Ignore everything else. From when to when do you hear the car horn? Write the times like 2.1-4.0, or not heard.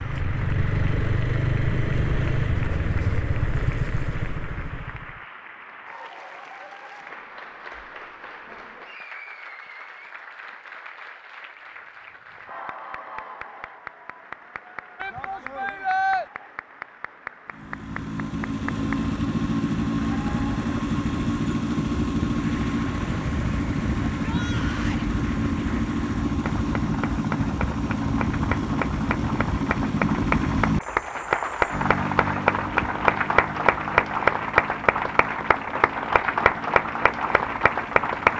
not heard.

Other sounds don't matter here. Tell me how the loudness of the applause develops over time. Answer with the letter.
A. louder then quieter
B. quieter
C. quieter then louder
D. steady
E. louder
E.